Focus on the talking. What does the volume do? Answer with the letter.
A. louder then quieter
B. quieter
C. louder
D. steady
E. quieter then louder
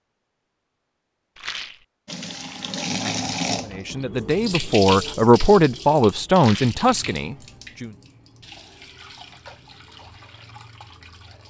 A.